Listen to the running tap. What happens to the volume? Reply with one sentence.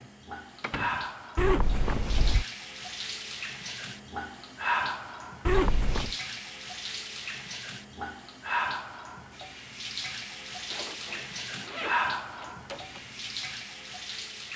The volume of the running tap stays about the same.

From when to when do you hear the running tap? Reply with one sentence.
You can hear the running tap from 0.0 to 14.5 s.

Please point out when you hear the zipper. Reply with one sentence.
The zipper can be heard from 1.4 to 2.5 s, from 5.5 to 6.2 s and from 10.7 to 12.6 s.